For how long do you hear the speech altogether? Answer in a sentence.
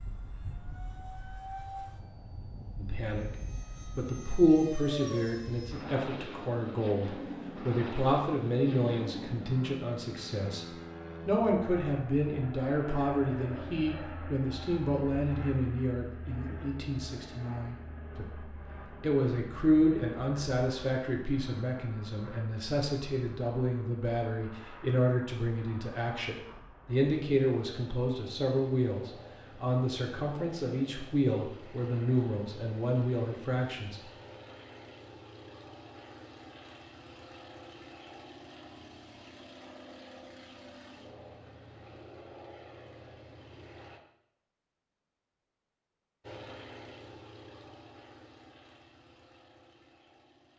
The speech can be heard for 31 seconds in total.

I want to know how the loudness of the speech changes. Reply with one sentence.
The volume of the speech stays about the same.